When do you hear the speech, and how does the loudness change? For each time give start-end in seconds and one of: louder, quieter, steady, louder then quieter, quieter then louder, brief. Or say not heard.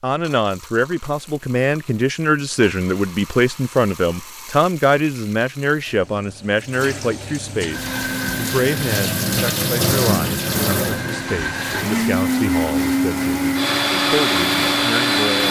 0.0-15.4 quieter.